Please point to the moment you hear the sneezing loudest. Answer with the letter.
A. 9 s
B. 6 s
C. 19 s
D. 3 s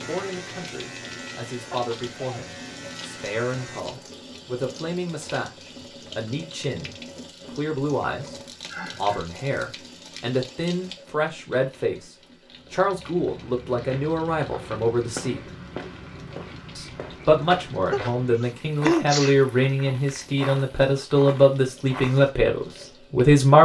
C.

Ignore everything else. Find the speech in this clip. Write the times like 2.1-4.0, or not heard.
0.0-8.3, 8.9-15.4, 16.8-23.5.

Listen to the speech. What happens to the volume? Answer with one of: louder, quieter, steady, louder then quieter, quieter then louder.
louder.